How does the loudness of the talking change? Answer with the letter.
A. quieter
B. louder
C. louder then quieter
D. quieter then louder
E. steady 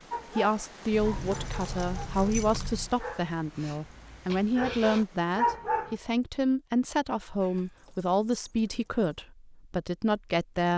E.